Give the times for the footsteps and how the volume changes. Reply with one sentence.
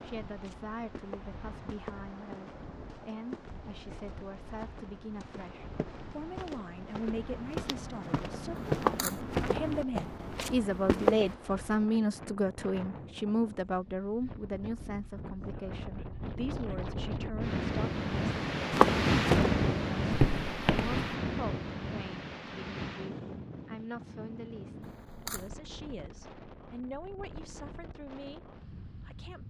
The footsteps can be heard from 0.3 to 11.3 s, getting louder; and briefly from 18.7 to 20.9 s.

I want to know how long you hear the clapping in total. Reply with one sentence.
You can't hear the clapping here.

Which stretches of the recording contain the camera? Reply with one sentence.
You can hear the camera from 8.6 to 9.2 s and from 24.8 to 25.5 s.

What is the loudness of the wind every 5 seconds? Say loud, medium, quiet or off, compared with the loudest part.
quiet, quiet, quiet, loud, medium, quiet.